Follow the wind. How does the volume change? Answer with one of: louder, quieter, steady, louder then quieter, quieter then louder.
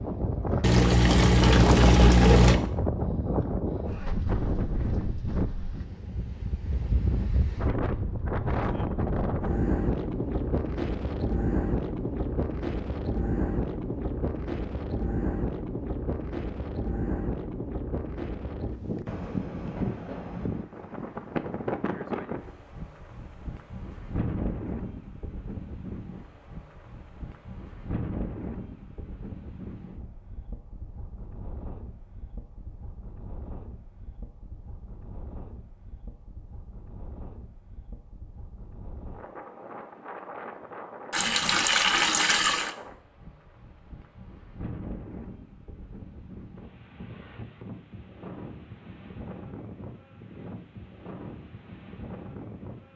quieter.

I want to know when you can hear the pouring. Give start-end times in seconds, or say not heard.
0.6-2.6, 41.1-42.7.